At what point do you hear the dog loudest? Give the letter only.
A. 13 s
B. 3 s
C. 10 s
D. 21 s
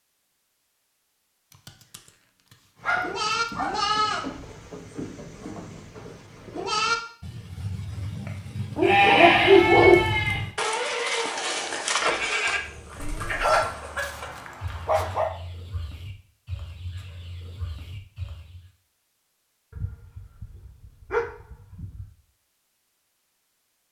C.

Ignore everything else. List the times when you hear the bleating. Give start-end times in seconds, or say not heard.
2.8-13.7.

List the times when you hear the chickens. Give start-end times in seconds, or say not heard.
12.0-18.6.